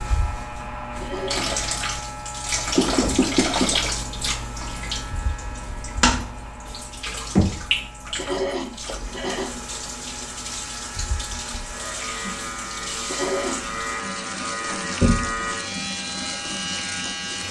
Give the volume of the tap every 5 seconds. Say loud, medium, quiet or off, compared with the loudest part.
loud, loud, medium, medium.